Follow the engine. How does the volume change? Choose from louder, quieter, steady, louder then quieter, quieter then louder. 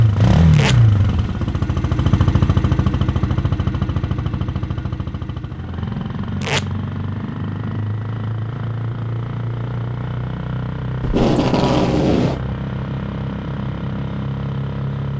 quieter.